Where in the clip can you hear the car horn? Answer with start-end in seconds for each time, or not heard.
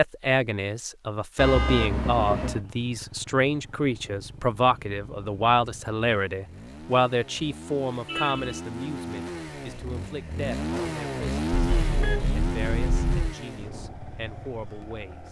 1.4-2.6, 8.1-8.6, 11.5-13.3.